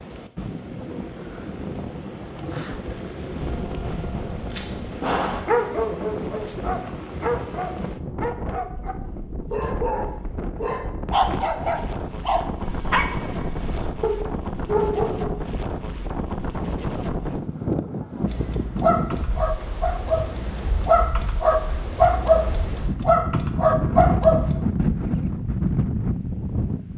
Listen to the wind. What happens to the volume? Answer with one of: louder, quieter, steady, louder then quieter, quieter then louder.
louder.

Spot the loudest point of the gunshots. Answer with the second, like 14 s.
5 s.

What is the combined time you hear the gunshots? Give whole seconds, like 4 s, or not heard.
2 s.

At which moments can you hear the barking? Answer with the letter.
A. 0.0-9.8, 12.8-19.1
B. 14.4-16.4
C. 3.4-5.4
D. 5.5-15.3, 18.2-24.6
D.